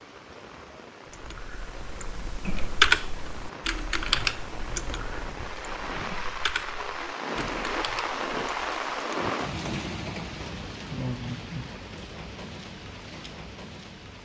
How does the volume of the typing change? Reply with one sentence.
The volume of the typing goes down.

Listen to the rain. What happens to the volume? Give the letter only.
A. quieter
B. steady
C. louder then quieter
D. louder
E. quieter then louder
C.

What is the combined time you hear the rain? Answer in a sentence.
You can hear the rain for 14 seconds altogether.